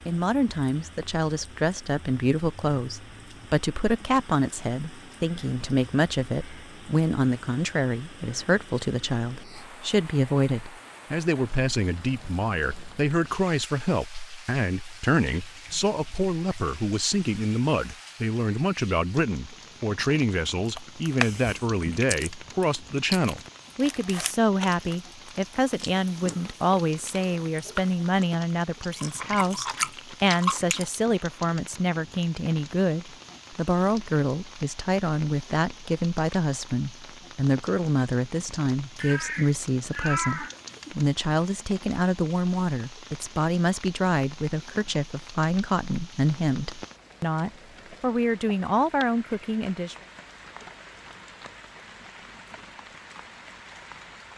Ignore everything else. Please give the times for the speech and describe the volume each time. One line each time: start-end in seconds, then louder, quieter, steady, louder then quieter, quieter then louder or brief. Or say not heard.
0.1-50.0 steady.